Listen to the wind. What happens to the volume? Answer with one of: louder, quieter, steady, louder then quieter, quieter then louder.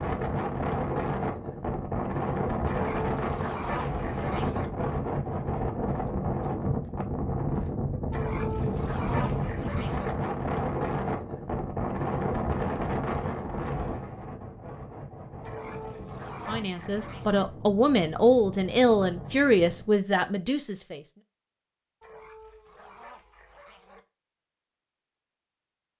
quieter.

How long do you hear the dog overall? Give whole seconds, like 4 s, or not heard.
8 s.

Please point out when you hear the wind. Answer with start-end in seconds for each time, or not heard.
0.0-19.9.